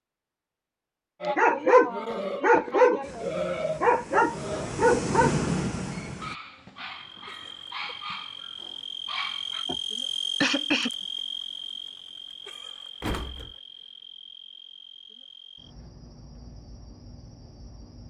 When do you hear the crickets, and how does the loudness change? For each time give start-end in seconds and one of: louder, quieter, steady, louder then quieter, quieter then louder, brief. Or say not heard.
6.8-18.0 louder then quieter.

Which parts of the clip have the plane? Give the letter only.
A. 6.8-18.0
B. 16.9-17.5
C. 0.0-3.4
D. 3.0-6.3
D.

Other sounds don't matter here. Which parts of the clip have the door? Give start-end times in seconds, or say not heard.
13.0-13.6.